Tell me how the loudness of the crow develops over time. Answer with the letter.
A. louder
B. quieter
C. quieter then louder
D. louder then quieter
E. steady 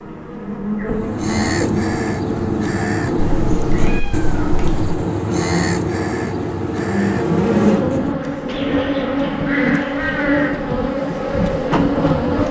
B.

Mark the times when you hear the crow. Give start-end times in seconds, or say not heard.
0.8-10.7.